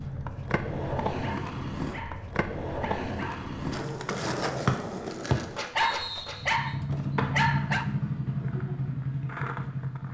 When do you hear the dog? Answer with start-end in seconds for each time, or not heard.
1.2-3.5, 5.8-7.8.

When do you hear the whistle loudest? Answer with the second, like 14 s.
5 s.